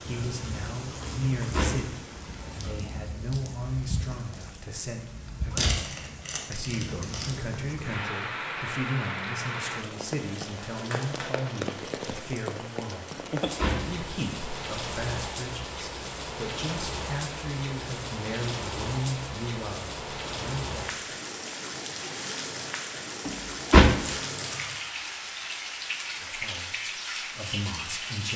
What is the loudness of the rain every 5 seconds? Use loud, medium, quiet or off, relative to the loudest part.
medium, loud, loud, loud, loud, loud.